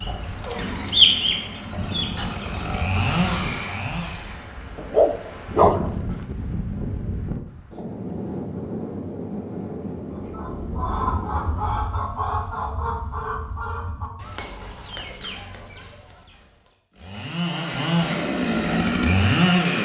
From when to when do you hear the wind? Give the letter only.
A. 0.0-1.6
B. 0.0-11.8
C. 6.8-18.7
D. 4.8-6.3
B.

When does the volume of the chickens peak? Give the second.
1 s.